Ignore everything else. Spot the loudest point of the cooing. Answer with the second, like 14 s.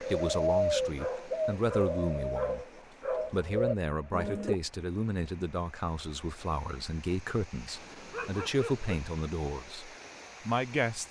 1 s.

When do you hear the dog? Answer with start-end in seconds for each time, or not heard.
0.9-3.6, 7.7-8.9.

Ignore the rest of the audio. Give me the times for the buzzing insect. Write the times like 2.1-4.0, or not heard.
not heard.